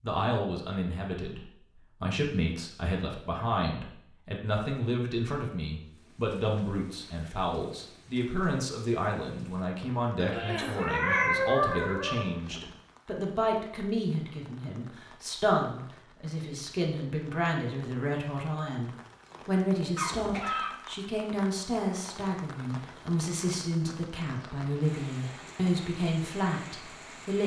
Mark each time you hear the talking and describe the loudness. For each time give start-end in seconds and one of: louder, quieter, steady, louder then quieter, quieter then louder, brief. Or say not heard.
0.0-27.4 steady.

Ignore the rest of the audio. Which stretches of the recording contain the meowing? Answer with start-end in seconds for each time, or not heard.
10.2-12.2.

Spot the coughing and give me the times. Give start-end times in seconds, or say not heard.
10.3-10.9, 19.9-20.8.